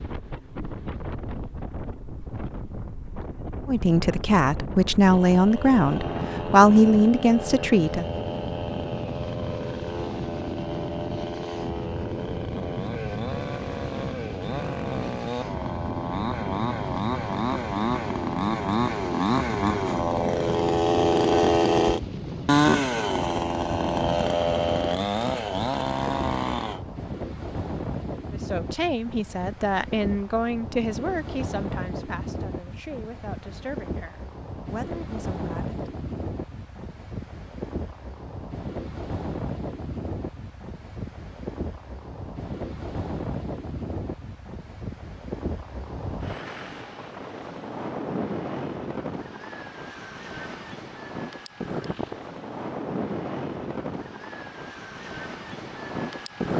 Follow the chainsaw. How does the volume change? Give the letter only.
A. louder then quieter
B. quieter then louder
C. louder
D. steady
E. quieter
C.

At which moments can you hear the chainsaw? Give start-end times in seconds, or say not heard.
5.0-26.9.